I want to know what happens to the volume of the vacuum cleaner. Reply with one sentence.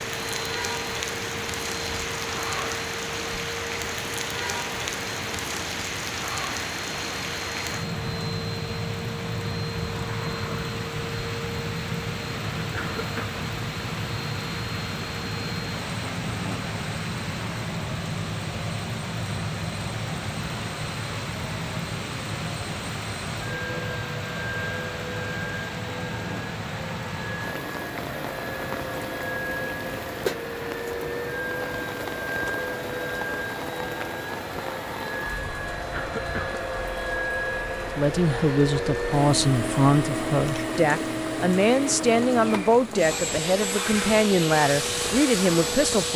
The volume of the vacuum cleaner goes up.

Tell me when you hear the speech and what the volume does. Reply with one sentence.
The speech can be heard from 38.0 to 46.1 s, at a steady volume.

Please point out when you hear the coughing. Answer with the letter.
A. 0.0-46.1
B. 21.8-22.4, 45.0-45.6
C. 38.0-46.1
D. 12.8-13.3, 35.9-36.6
D.